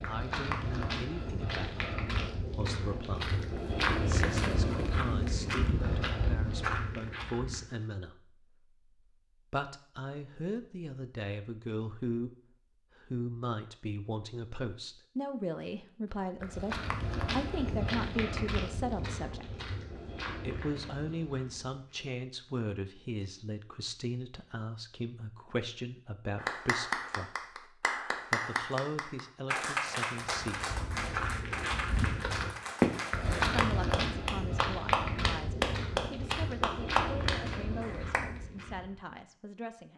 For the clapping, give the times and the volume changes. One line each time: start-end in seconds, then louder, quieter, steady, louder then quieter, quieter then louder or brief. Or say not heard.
26.4-38.2 quieter then louder.